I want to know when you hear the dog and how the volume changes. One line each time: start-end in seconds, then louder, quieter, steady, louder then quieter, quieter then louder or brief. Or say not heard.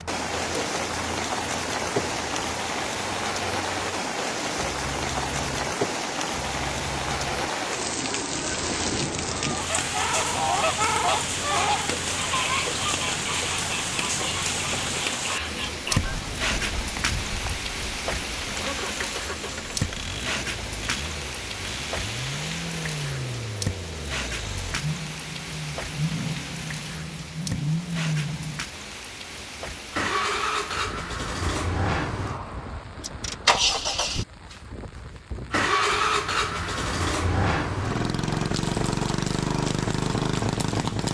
not heard.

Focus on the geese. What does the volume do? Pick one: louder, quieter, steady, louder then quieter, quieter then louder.
quieter.